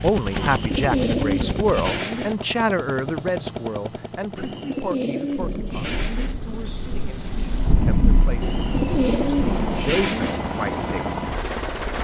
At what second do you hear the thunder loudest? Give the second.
8 s.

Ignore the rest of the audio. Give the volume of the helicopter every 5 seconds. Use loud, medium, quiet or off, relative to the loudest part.
loud, medium, loud.